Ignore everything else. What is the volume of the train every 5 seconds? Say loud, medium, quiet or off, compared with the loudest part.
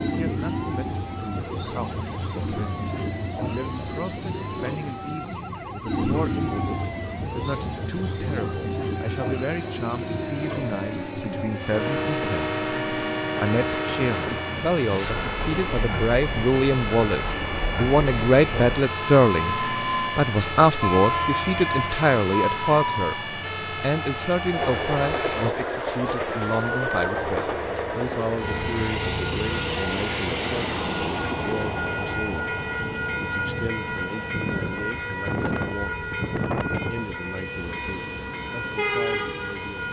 loud, loud, loud, medium, loud, loud, loud, loud.